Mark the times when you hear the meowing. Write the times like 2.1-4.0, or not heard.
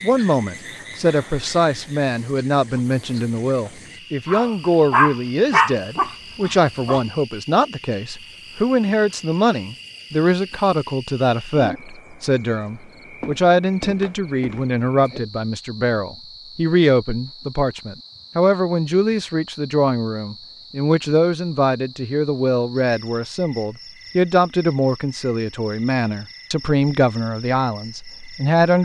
not heard.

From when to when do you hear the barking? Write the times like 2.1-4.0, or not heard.
4.2-7.0.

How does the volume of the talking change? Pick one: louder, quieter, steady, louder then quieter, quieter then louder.
steady.